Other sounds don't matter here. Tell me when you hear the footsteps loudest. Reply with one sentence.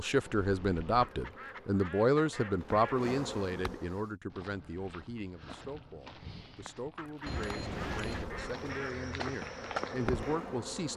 The volume of the footsteps peaks at 10 seconds.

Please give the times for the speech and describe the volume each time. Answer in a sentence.
You can hear the speech from 0.0 to 10.9 s, getting quieter then louder.